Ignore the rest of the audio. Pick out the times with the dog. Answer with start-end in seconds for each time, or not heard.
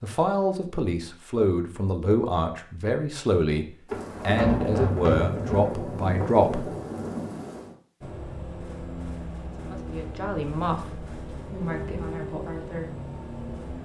not heard.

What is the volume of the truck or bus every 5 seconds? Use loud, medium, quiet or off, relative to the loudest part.
off, loud, loud.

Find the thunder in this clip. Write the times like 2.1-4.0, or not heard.
3.9-7.7.